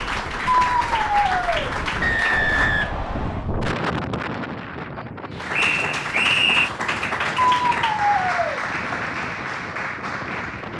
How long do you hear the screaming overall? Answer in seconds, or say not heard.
2 s.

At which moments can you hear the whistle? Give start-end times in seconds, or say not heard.
2.0-3.5, 5.5-6.7.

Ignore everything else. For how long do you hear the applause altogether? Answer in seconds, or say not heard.
8 s.